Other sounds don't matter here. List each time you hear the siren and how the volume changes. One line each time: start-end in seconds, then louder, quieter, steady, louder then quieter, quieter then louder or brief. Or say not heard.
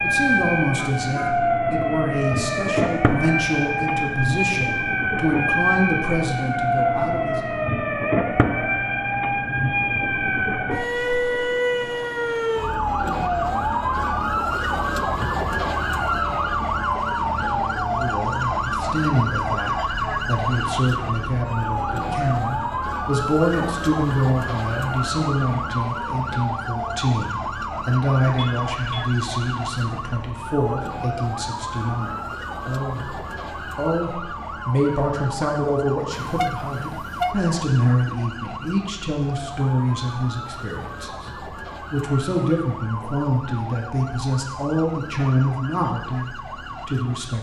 0.0-47.3 quieter.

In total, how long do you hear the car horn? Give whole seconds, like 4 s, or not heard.
3 s.